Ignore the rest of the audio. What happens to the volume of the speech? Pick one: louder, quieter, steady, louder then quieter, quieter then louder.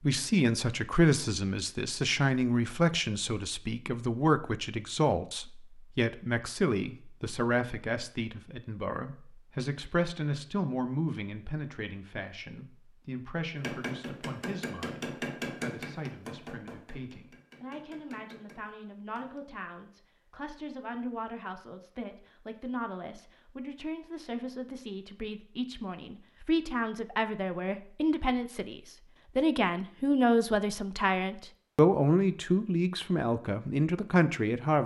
quieter then louder.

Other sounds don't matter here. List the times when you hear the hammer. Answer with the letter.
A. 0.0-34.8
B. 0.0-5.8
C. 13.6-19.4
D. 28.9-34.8
C.